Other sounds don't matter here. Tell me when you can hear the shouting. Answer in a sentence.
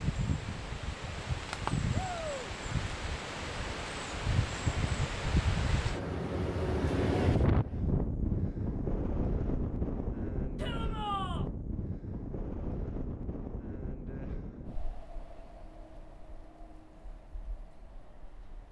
The shouting can be heard from 1.9 to 2.5 s and from 10.6 to 11.5 s.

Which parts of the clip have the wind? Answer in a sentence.
The wind can be heard from 0.0 to 18.6 s.